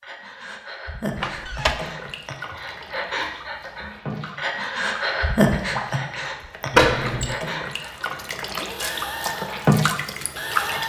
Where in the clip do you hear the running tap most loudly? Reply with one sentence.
The loudest moment of the running tap is at 10 seconds.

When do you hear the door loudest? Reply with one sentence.
The loudest moment of the door is at 7 seconds.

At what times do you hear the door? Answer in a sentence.
The door can be heard from 1.2 to 1.8 s and from 6.7 to 7.3 s.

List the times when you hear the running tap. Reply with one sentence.
You can hear the running tap from 1.6 to 10.8 s.